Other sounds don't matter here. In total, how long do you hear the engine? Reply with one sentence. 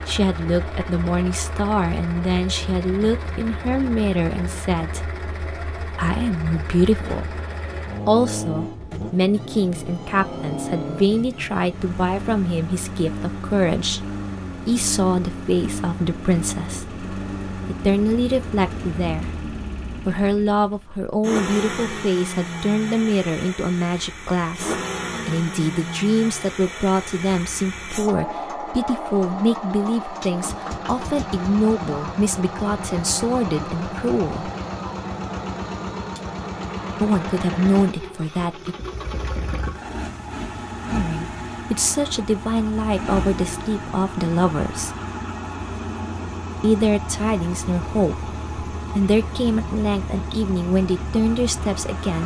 You can hear the engine for 52 seconds altogether.